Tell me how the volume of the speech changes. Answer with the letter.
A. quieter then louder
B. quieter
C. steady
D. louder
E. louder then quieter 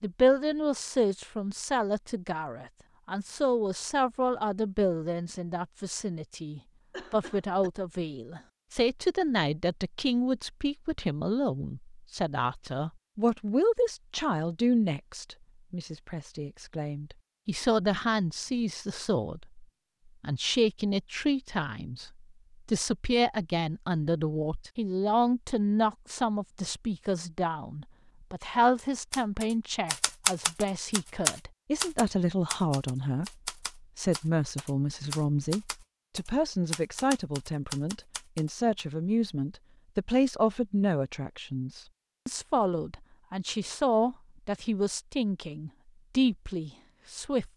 C.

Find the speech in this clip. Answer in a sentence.
The speech can be heard from 0.0 to 47.5 s.